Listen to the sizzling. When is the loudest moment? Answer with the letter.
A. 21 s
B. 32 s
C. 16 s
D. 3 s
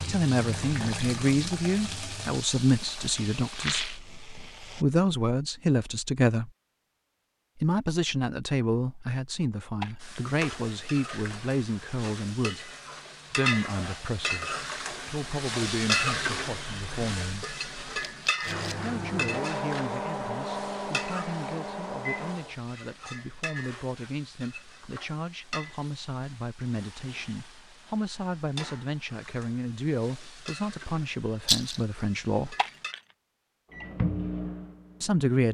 C.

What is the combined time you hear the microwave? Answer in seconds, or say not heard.
8 s.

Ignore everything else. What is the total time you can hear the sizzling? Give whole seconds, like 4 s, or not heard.
28 s.